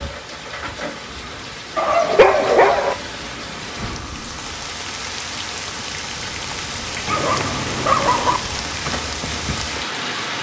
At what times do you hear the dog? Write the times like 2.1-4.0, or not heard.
1.8-3.0, 7.0-8.4.